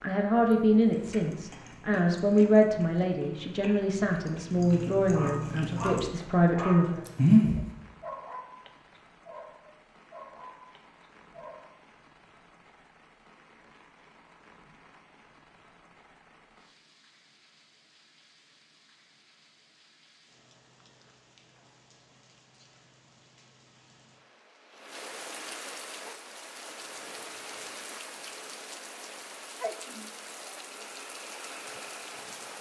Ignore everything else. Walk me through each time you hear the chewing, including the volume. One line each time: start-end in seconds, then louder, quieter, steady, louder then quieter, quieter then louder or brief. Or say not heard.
0.3-7.6 louder then quieter.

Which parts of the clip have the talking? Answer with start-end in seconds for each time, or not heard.
0.0-7.0.